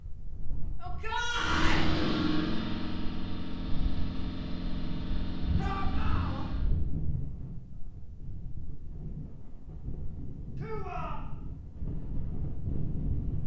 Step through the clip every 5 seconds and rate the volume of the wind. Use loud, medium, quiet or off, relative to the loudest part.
medium, loud, loud.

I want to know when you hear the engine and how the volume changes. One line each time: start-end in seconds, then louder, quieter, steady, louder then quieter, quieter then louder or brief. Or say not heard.
1.4-6.7 quieter.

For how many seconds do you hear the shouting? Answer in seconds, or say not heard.
3 s.